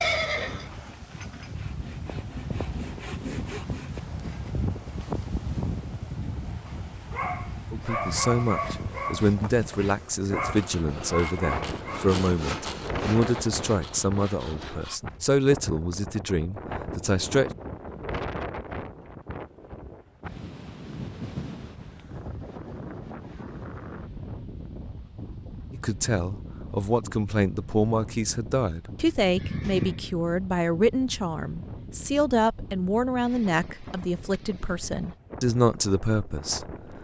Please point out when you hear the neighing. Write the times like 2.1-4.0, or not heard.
0.0-1.5, 29.4-30.1.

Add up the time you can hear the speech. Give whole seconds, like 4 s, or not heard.
21 s.